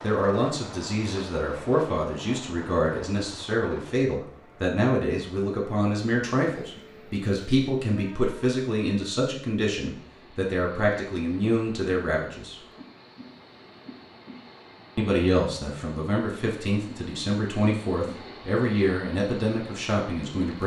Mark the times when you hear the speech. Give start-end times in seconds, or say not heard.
0.0-12.6, 14.9-20.6.